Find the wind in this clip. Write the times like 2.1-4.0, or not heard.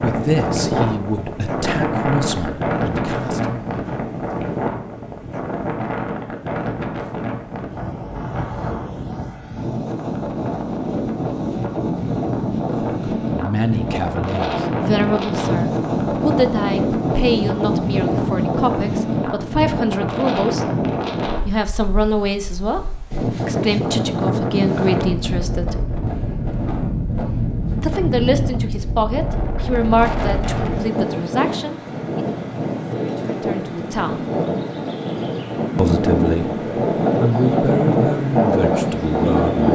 0.0-39.7.